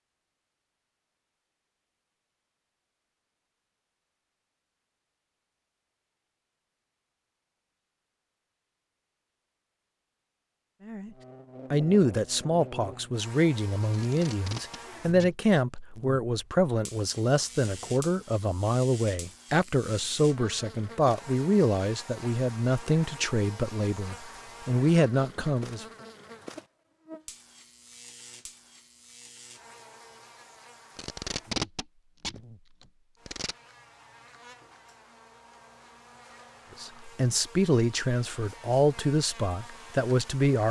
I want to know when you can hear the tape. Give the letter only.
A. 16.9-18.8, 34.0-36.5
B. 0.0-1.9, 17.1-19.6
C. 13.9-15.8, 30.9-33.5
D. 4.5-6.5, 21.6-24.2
C.